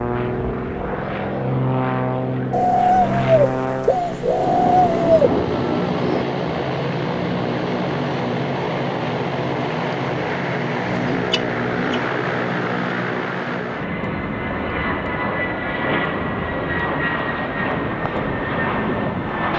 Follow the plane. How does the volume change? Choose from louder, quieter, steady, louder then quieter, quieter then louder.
steady.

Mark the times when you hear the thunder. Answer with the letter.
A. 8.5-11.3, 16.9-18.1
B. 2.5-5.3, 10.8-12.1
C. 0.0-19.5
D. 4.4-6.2
D.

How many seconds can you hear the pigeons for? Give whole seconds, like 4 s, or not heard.
4 s.